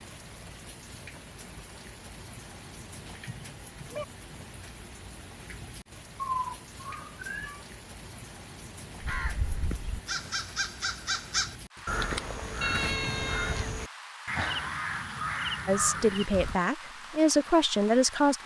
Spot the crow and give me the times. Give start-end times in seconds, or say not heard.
9.0-16.6.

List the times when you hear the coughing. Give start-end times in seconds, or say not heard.
not heard.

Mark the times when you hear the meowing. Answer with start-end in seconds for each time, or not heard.
3.0-4.0, 6.2-7.7, 12.6-13.8.